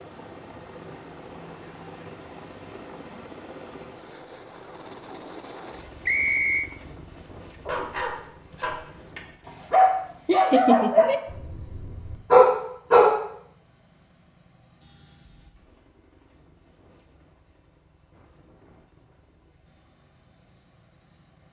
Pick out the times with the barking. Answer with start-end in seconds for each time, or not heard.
7.5-13.1.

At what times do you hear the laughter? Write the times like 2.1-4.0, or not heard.
10.2-11.2.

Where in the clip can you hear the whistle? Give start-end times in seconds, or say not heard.
6.0-6.7.